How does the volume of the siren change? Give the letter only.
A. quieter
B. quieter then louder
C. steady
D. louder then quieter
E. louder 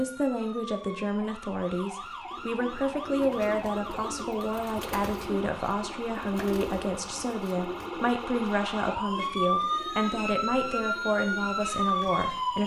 E.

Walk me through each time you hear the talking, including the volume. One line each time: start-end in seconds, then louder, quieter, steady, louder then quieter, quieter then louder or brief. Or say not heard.
0.0-12.6 steady.